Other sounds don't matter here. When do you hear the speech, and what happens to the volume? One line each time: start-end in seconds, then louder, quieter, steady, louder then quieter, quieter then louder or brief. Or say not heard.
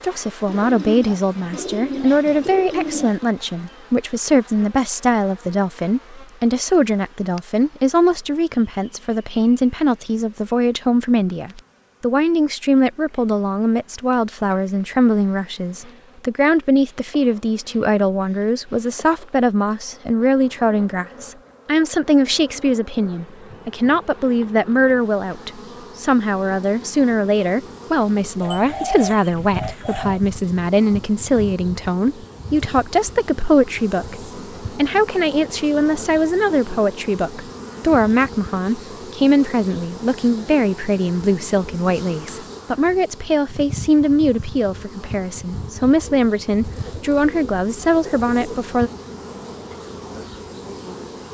0.0-48.9 steady.